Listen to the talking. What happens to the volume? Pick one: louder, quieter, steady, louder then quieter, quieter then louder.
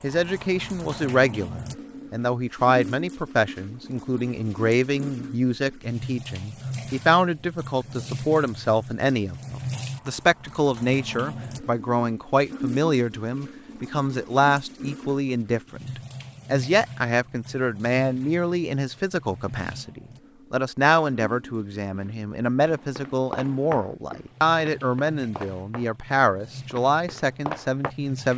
steady.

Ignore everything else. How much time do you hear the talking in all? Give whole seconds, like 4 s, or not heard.
28 s.